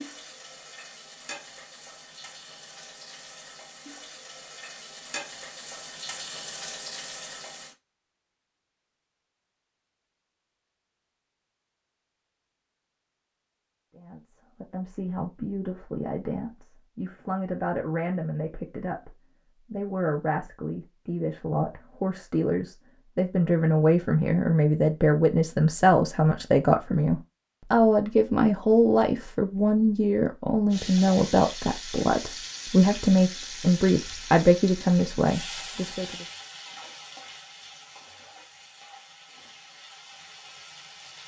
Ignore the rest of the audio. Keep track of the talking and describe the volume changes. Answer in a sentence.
The loudness of the talking goes up.